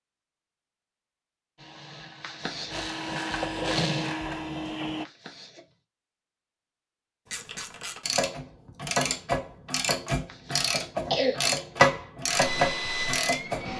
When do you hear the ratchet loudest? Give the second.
12 s.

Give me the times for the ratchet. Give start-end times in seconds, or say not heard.
7.3-13.7.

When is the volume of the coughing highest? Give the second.
11 s.